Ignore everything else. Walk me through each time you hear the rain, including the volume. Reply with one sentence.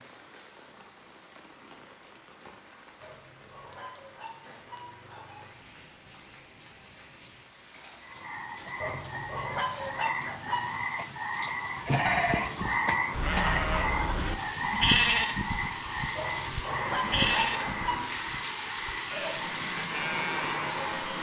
The rain can be heard from 0.0 to 21.1 s, getting louder.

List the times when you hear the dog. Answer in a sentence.
The dog can be heard from 3.0 to 5.5 s, from 8.8 to 10.7 s and from 16.1 to 18.1 s.